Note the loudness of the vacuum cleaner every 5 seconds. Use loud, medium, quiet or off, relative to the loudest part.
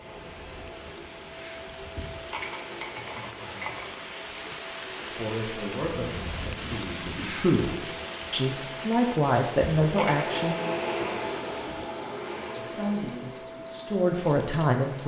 medium, medium, loud.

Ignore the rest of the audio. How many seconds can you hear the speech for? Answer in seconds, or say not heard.
8 s.